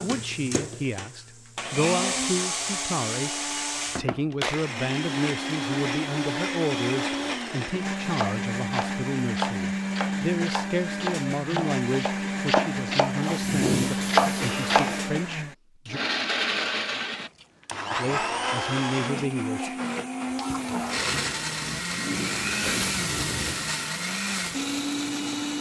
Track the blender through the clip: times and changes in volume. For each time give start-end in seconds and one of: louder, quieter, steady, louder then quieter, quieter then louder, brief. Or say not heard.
0.0-25.5 steady.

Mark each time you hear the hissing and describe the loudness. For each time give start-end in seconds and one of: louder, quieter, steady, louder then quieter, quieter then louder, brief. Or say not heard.
13.2-15.1 brief
20.2-25.5 louder then quieter.